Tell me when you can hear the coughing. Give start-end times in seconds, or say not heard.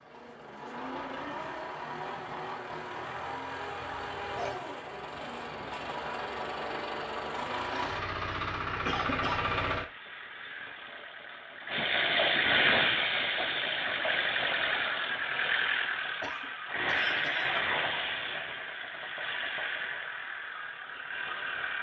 3.8-4.6, 8.8-9.4, 16.2-17.7.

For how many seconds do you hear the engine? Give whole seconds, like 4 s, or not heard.
22 s.